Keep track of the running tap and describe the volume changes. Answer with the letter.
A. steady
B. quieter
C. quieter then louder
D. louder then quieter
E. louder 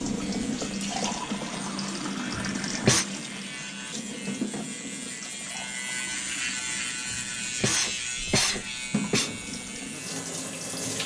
C.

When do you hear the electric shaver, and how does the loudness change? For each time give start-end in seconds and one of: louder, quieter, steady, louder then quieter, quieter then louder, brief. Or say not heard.
0.0-10.8 louder then quieter.